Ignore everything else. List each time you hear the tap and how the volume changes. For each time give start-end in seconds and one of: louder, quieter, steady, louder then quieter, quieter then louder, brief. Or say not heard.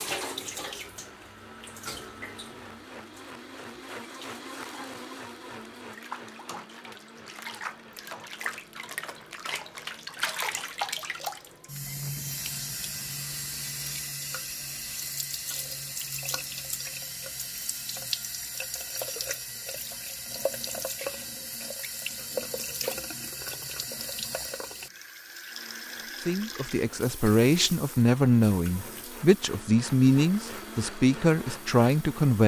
0.0-32.4 louder then quieter.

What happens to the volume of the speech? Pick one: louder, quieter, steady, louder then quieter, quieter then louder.
steady.